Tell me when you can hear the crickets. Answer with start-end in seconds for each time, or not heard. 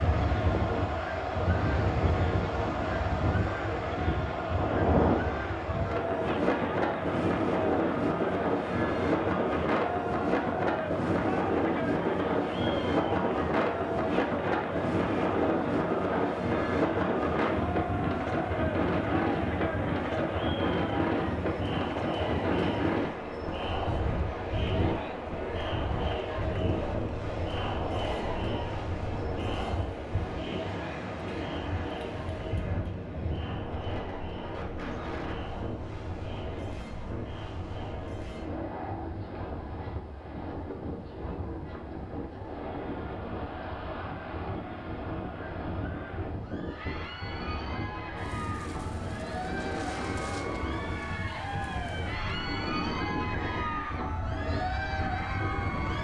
not heard.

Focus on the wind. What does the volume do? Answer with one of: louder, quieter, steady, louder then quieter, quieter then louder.
quieter.